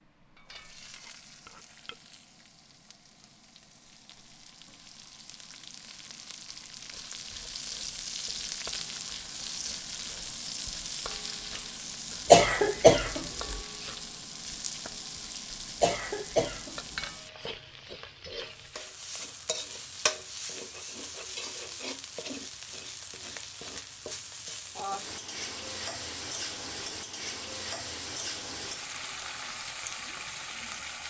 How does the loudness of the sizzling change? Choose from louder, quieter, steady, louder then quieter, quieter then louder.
louder.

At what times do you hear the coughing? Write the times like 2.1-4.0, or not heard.
12.3-13.6, 15.8-16.8.